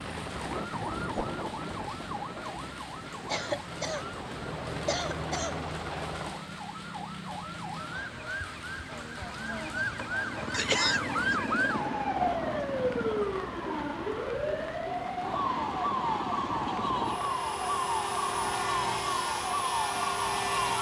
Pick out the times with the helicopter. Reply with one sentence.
The helicopter can be heard from 0.0 to 6.5 s and from 10.2 to 20.7 s.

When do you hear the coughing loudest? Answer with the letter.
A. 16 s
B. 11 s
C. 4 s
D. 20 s
B.